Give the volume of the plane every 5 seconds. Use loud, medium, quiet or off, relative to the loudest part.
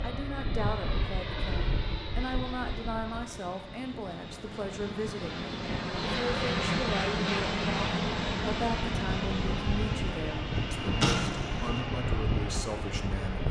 medium, loud, loud.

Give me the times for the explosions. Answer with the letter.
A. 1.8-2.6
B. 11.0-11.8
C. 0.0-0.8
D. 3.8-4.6
B.